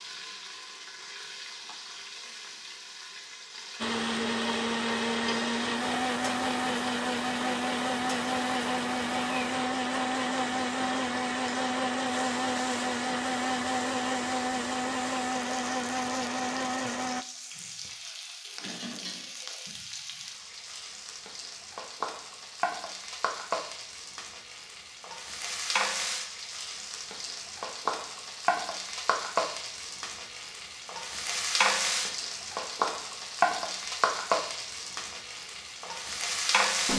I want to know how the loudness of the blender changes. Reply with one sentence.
The volume of the blender stays about the same.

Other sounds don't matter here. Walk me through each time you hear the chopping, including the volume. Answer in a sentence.
The chopping can't be heard in this clip.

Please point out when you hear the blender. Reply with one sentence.
The blender can be heard from 3.8 to 17.2 s.